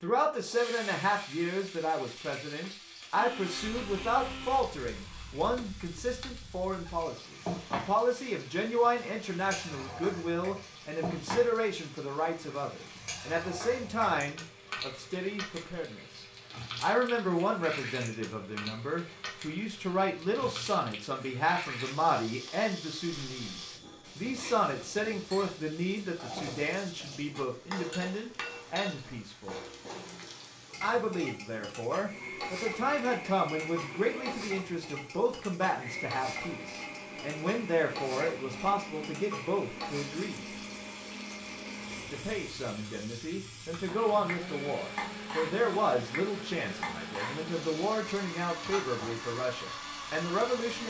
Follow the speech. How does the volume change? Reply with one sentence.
The volume of the speech stays about the same.